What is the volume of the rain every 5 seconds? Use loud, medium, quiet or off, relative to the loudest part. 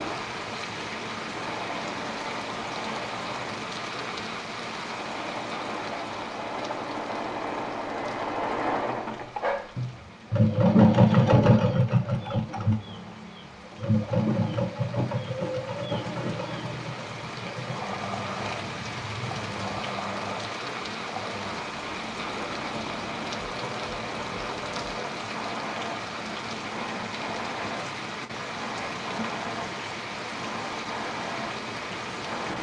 loud, medium, quiet, loud, loud, loud, loud.